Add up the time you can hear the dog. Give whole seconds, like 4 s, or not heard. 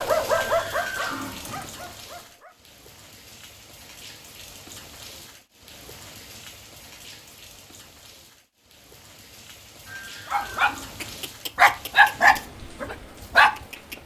6 s.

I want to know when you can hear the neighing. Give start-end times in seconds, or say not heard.
0.2-1.9, 9.8-11.6.